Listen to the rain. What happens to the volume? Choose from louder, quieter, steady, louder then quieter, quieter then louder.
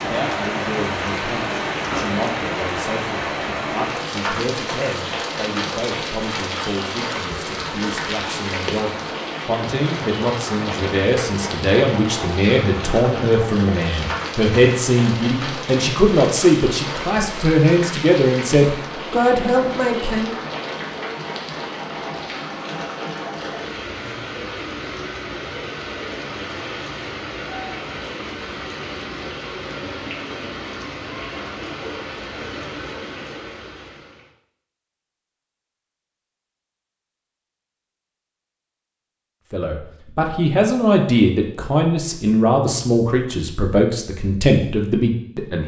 quieter.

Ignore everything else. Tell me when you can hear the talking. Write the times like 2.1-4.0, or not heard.
0.0-20.4, 39.5-45.6.